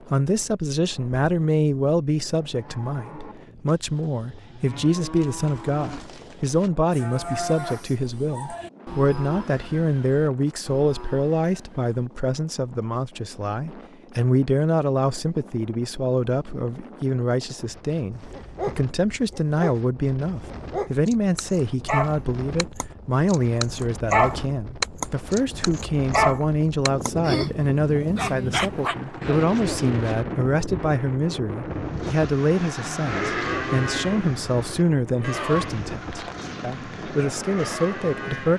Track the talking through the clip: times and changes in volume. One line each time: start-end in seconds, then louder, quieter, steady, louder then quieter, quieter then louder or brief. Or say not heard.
0.1-38.5 steady.